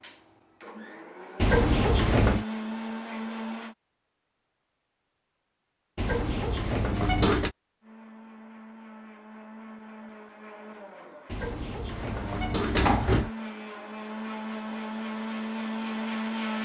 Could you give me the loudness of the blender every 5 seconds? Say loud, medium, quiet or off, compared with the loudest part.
medium, quiet, medium, loud.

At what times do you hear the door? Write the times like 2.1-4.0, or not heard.
1.4-2.5, 6.0-7.5, 11.3-13.3.